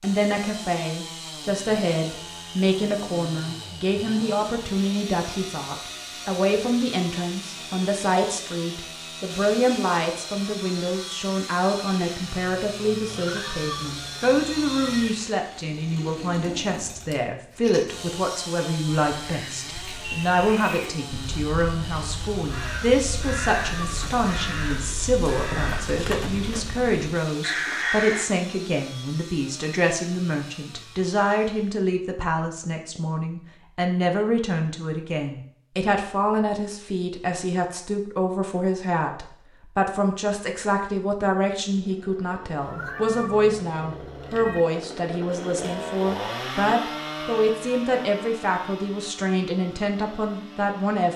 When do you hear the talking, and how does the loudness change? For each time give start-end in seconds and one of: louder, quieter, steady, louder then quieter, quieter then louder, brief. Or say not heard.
0.0-51.1 steady.